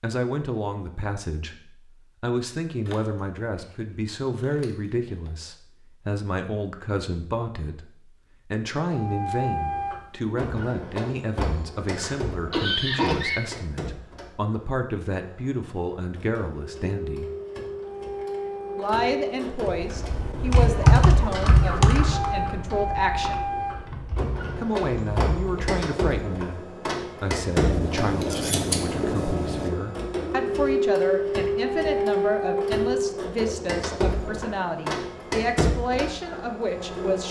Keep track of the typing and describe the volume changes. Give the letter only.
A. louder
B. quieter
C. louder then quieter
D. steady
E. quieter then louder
B.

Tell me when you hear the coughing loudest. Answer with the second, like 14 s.
13 s.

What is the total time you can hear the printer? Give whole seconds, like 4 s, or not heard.
28 s.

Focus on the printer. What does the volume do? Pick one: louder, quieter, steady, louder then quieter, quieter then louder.
louder.